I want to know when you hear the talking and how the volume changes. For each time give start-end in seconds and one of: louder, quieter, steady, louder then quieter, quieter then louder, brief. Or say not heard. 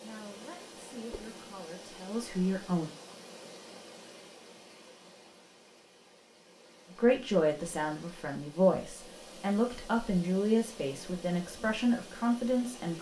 0.0-2.9 brief
7.0-12.9 steady.